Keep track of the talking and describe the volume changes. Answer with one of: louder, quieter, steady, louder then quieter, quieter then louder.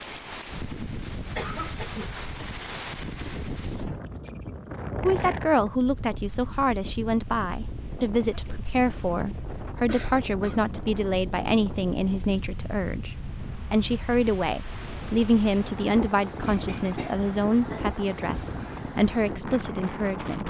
steady.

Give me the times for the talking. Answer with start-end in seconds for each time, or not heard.
5.0-20.4.